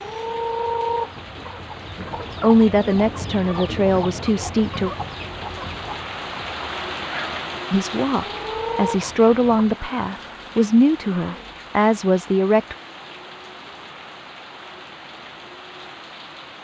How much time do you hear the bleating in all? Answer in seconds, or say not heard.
not heard.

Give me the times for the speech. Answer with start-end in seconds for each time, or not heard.
2.4-4.9, 7.7-12.8.